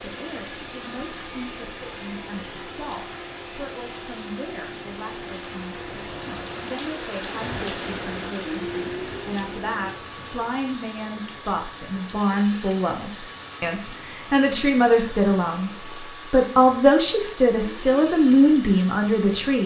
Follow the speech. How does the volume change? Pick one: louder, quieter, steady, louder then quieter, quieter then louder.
louder.